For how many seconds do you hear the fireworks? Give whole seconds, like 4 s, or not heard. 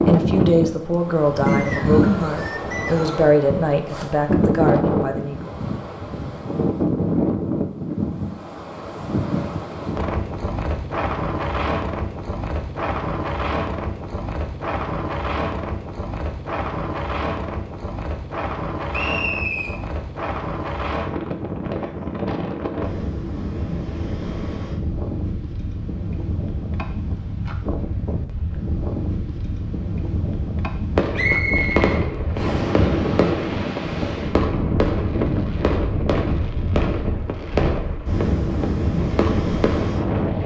9 s.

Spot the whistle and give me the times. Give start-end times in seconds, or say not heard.
1.4-3.2, 18.9-19.8, 31.1-32.6.